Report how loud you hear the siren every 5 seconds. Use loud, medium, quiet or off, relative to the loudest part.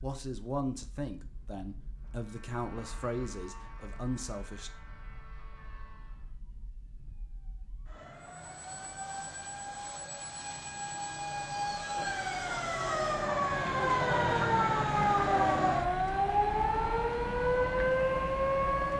quiet, quiet, loud, loud.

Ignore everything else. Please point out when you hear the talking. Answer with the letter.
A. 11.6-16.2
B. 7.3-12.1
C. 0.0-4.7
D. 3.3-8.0
C.